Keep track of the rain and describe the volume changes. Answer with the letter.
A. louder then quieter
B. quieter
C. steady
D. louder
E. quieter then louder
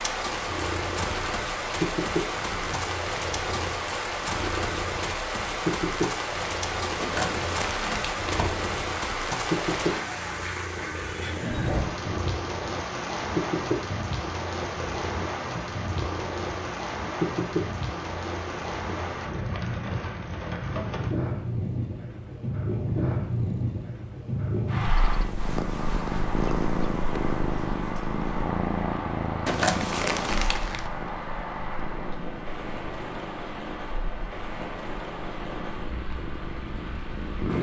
B.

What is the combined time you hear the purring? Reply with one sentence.
The purring can be heard for 37 seconds in total.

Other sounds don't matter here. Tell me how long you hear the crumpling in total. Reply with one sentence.
The crumpling can be heard for 3 seconds in total.